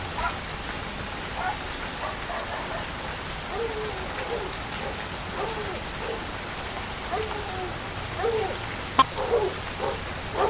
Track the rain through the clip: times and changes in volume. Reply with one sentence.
You can hear the rain from 0.0 to 10.4 s, at a steady volume.